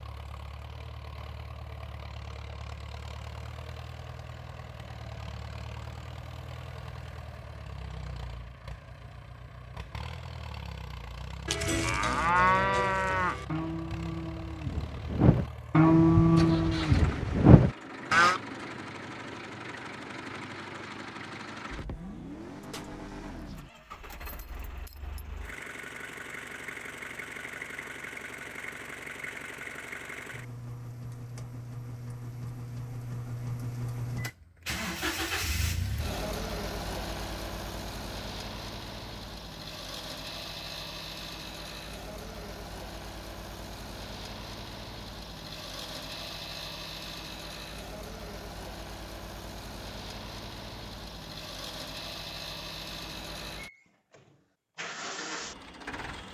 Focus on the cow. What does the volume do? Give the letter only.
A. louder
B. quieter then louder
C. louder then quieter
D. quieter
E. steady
B.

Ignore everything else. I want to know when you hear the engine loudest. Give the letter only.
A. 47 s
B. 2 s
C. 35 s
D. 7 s
C.